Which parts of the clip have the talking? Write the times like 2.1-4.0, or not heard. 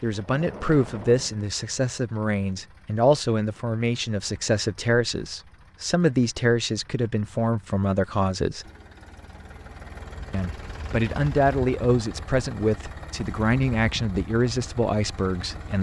0.0-8.7, 10.3-15.7.